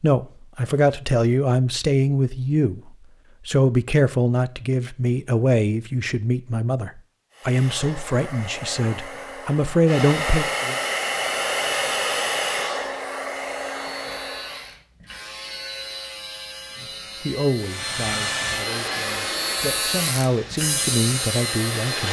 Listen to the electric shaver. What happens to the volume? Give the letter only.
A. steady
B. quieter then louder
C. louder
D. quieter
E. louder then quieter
C.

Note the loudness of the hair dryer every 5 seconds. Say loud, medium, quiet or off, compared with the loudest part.
off, medium, loud, loud, medium.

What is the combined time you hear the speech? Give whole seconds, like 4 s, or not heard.
16 s.